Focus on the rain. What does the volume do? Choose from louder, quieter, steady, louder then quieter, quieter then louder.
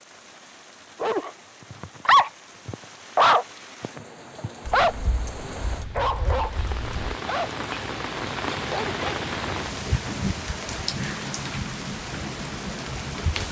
louder.